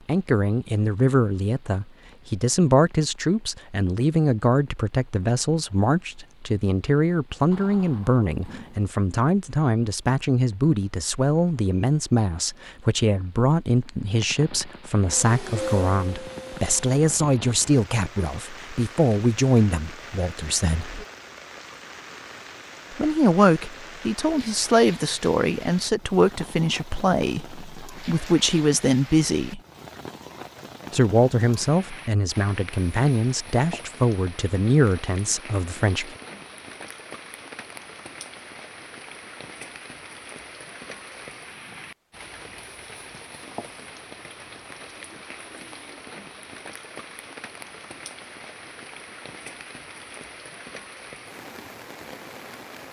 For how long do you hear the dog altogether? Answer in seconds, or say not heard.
not heard.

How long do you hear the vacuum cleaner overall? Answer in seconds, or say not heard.
2 s.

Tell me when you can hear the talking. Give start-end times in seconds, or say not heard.
0.1-21.1, 22.9-29.6, 30.9-36.1.